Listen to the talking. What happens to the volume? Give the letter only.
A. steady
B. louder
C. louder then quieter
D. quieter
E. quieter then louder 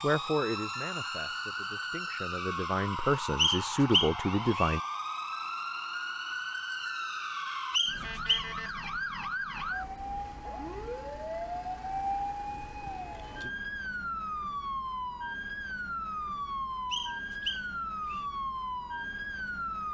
E.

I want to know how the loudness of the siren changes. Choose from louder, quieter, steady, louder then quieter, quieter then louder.
steady.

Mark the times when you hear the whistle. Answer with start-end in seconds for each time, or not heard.
3.4-4.8, 7.7-8.5, 16.9-18.2.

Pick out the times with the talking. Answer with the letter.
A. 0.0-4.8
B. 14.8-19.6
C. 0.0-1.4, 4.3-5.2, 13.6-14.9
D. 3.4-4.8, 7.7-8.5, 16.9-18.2
A.